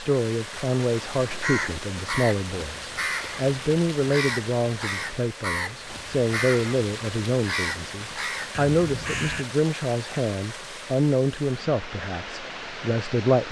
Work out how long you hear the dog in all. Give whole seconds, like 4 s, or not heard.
not heard.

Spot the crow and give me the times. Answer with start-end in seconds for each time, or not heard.
0.9-9.4.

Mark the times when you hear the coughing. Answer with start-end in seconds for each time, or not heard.
not heard.